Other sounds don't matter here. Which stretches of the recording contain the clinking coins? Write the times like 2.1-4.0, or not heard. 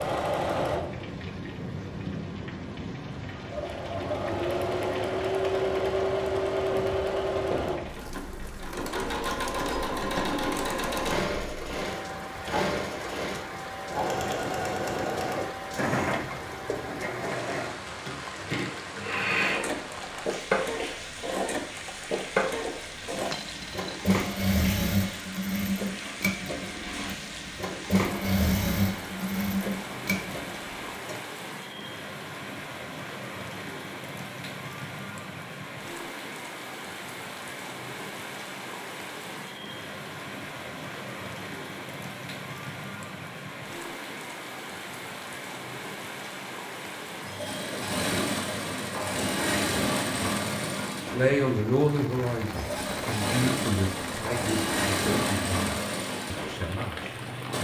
23.3-24.0.